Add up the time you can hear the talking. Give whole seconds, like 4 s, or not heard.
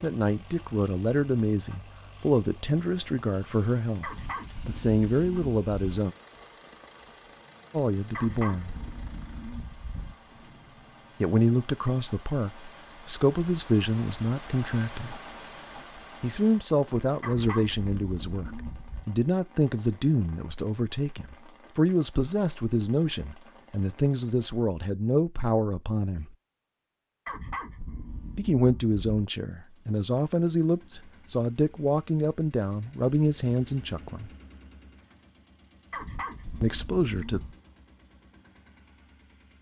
28 s.